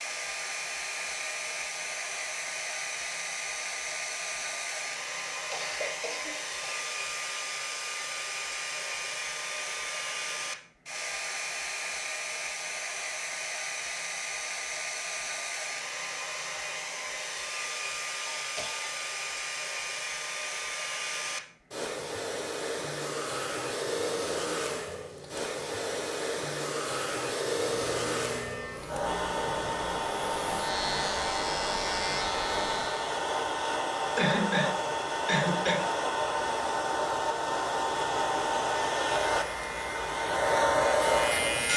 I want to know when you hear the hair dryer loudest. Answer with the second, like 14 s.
41 s.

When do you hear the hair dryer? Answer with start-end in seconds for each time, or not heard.
0.0-41.7.